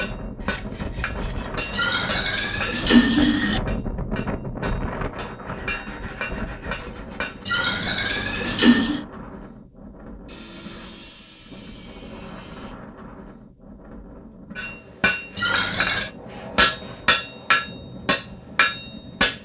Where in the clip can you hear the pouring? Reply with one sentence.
You can hear the pouring from 1.7 to 3.6 s, from 7.5 to 9.1 s and from 15.3 to 16.1 s.